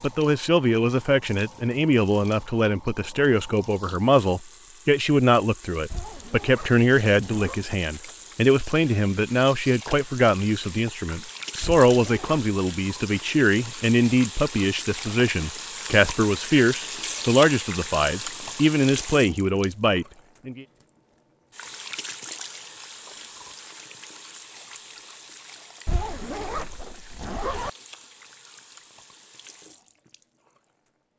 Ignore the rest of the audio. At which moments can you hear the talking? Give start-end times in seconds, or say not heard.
0.0-20.6.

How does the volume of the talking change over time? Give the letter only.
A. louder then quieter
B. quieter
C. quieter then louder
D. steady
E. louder
D.